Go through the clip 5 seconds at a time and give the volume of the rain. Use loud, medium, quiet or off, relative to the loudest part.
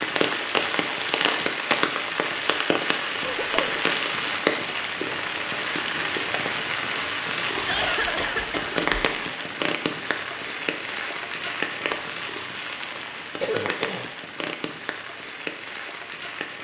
loud, loud, medium, medium.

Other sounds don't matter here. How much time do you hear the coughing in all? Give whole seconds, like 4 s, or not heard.
3 s.